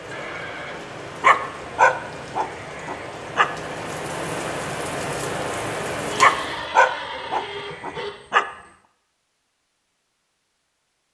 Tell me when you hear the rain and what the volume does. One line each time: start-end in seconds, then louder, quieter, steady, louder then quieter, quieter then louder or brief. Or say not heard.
0.0-6.7 louder.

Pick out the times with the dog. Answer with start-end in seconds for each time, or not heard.
1.2-3.5, 6.2-8.4.